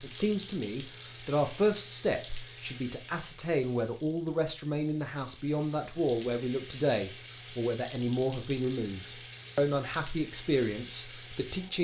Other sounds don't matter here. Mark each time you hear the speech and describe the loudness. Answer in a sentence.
You can hear the speech from 0.0 to 11.8 s, at a steady volume.